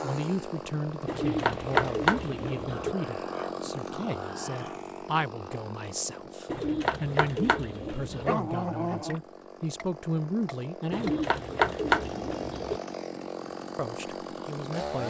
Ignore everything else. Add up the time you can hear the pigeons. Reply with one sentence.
You can hear the pigeons for 6 seconds altogether.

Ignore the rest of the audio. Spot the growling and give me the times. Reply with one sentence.
You can hear the growling from 2.5 to 4.8 s and from 8.1 to 9.2 s.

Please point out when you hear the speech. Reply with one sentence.
You can hear the speech from 0.0 to 11.2 s and from 13.8 to 15.0 s.